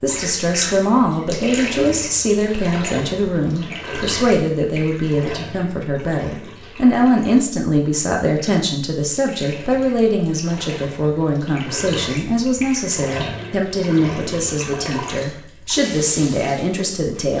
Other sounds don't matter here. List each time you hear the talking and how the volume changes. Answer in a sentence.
The talking can be heard from 0.0 to 17.3 s, at a steady volume.